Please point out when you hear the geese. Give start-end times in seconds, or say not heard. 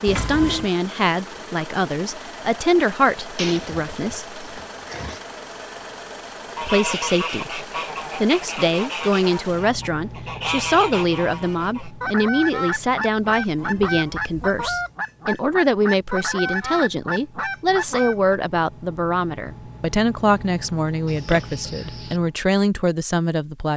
6.5-18.4.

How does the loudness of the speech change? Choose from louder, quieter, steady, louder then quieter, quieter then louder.
steady.